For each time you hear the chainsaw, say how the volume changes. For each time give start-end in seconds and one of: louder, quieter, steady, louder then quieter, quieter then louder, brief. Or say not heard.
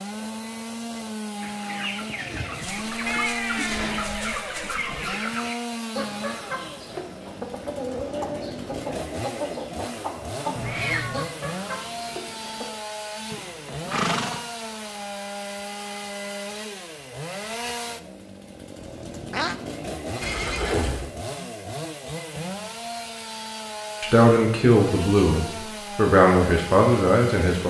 0.0-27.6 steady.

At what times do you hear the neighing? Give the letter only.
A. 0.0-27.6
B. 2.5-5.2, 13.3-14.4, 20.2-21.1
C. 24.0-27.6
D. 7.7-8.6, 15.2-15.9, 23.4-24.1
B.